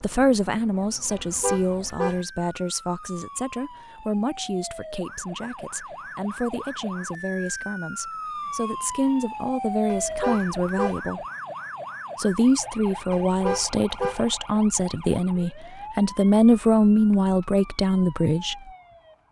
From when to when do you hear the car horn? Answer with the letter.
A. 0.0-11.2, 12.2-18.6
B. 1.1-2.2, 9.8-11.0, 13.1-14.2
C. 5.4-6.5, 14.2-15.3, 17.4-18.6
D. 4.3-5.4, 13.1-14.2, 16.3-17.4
B.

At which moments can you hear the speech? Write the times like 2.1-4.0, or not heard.
0.0-11.2, 12.2-18.6.